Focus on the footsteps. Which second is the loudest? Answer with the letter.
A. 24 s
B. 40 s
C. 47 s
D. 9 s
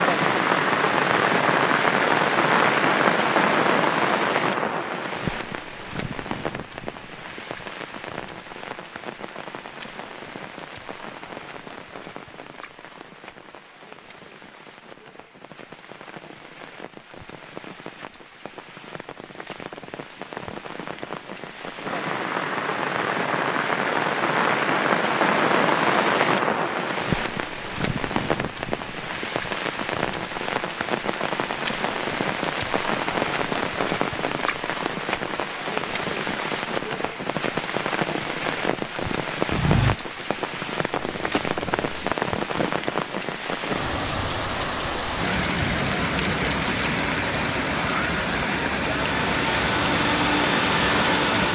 B.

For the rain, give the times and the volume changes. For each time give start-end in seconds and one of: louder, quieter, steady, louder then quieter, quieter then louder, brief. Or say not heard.
0.0-51.5 quieter then louder.